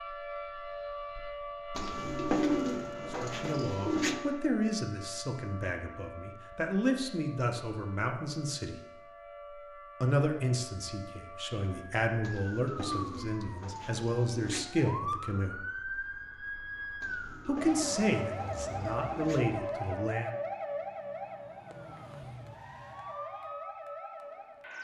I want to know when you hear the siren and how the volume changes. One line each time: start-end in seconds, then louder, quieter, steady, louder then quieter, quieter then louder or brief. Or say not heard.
0.0-24.7 quieter then louder.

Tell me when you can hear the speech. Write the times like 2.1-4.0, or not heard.
3.1-8.8, 10.0-15.6, 17.4-20.3.